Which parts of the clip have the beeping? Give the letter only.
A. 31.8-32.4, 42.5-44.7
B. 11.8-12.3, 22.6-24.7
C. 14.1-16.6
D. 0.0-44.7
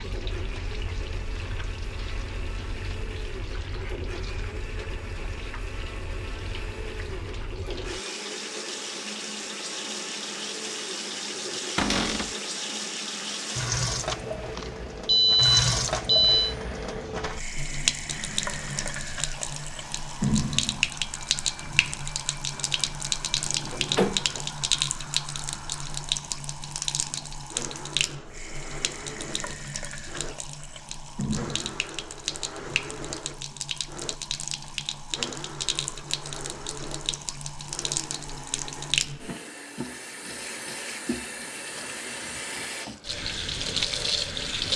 C.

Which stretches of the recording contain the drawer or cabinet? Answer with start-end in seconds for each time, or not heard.
11.8-12.3, 22.6-24.7.